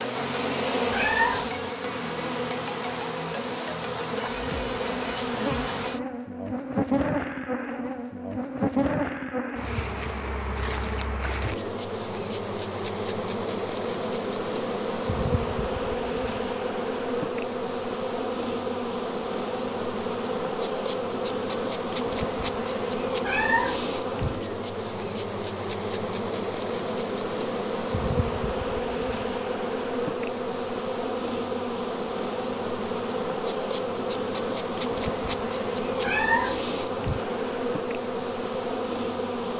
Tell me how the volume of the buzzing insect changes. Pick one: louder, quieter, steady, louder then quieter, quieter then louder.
steady.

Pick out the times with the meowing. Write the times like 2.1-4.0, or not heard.
0.9-1.5, 23.2-23.8, 36.0-36.6.